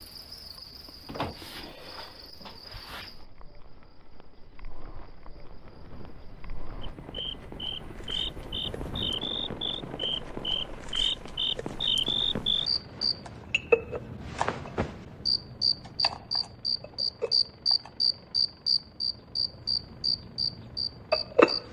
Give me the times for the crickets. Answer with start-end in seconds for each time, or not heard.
0.0-21.6.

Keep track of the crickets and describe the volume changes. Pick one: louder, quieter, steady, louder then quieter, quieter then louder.
louder.